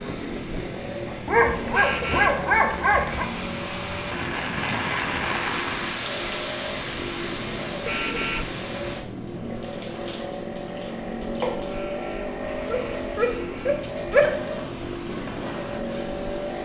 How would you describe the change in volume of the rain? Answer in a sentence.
The loudness of the rain goes up, then down.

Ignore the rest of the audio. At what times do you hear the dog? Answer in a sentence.
The dog can be heard from 1.2 to 3.2 s and from 12.7 to 14.3 s.